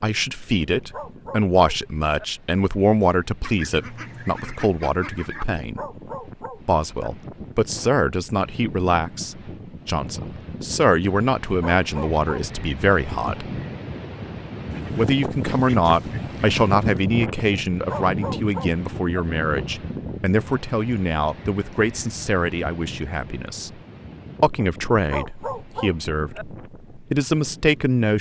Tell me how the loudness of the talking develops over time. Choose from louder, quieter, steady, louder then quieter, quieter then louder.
steady.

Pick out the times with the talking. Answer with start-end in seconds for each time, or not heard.
0.0-5.8, 6.7-13.4, 14.9-23.7, 24.4-28.1.